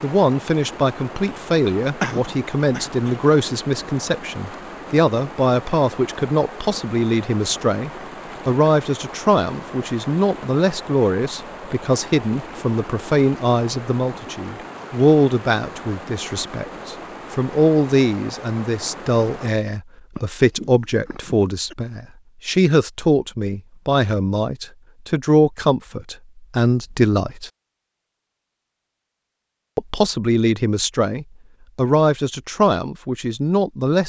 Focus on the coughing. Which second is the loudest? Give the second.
2 s.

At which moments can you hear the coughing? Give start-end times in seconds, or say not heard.
2.0-3.1, 20.1-21.8.